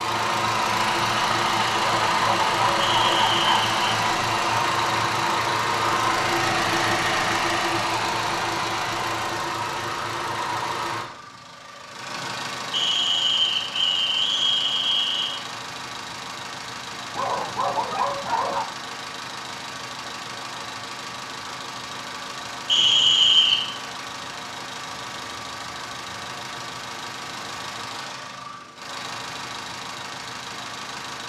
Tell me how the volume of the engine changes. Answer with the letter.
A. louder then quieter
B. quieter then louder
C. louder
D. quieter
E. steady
D.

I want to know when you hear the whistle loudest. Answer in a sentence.
The loudest moment of the whistle is at 23 seconds.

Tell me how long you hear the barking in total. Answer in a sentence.
The barking can be heard for 3 seconds in total.